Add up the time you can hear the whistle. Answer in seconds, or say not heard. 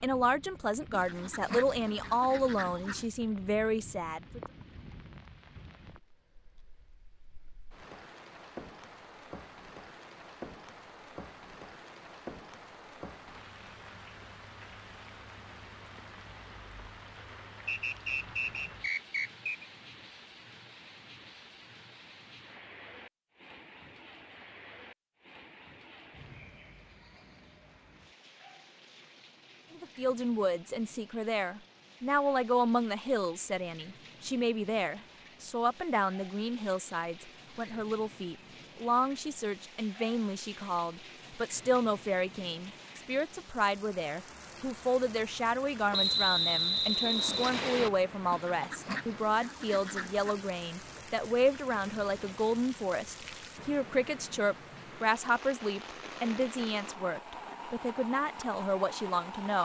4 s.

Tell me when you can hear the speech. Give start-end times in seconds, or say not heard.
0.0-4.4, 29.8-59.6.